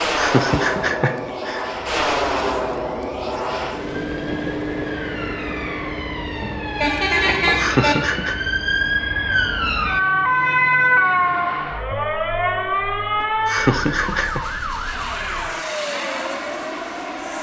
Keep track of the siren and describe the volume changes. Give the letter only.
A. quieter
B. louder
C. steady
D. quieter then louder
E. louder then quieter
E.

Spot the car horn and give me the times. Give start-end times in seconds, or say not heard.
6.4-8.0.